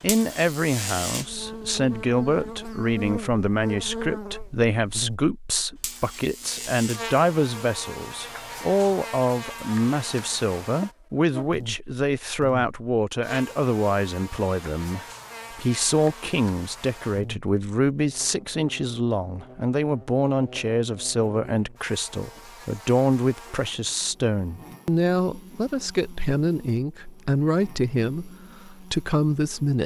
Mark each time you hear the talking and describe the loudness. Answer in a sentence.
The talking can be heard from 0.0 to 29.8 s, at a steady volume.